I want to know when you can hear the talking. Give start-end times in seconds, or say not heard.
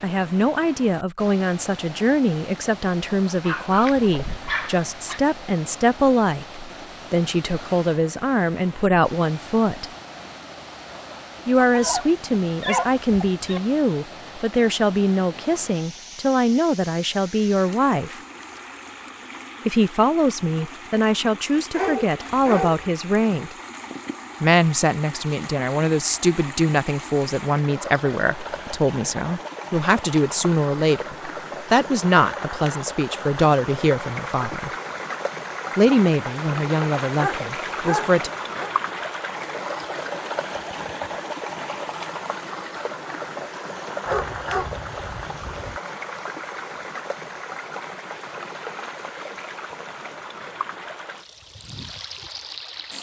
0.0-9.9, 11.4-18.1, 19.6-23.6, 24.4-34.7, 35.8-38.3.